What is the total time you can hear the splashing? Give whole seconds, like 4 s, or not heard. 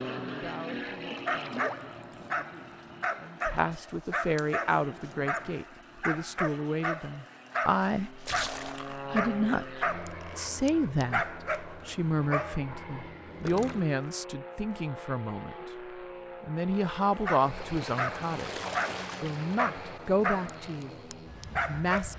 5 s.